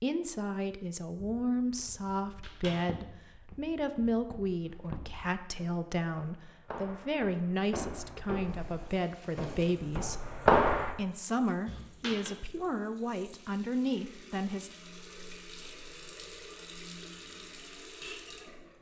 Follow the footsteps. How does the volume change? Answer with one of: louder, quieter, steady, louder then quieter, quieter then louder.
louder.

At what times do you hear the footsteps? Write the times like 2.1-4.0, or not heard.
1.1-10.9.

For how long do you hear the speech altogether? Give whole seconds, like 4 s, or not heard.
14 s.